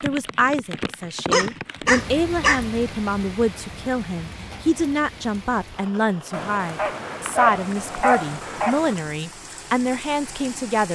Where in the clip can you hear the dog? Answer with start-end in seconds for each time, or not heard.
1.3-2.6, 6.3-9.0.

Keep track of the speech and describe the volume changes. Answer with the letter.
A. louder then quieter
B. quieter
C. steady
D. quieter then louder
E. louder
C.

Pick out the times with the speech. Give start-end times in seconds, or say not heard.
0.0-10.9.